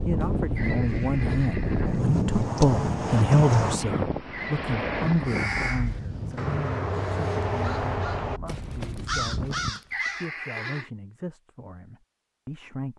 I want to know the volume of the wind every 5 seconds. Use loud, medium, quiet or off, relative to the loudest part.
loud, medium, off.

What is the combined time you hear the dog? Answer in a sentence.
You can't hear the dog here.